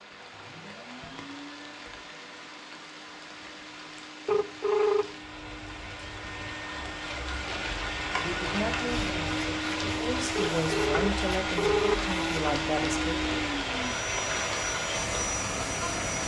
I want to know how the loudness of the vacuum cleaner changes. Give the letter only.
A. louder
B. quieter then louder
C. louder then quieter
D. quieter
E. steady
A.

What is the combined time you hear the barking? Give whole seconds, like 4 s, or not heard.
not heard.